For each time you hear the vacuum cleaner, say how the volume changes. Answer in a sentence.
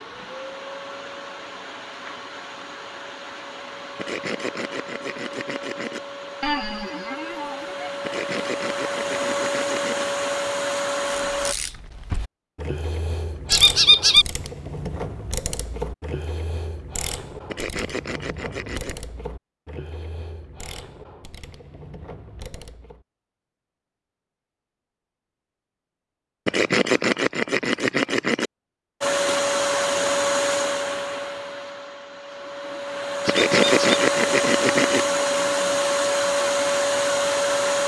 You can hear the vacuum cleaner from 0.0 to 11.6 s, getting louder; and from 29.0 to 37.8 s, getting quieter then louder.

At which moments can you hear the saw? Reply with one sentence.
The saw can be heard from 4.0 to 6.0 s, from 8.0 to 10.1 s, from 17.5 to 19.0 s, from 26.4 to 28.5 s and from 33.2 to 35.0 s.